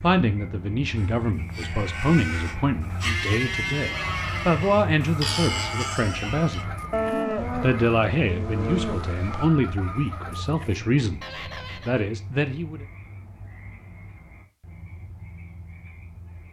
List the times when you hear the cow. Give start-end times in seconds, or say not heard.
0.9-9.5.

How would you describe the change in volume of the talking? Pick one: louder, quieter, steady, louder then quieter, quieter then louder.
steady.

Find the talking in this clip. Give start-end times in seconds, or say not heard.
0.0-6.8, 7.5-12.8.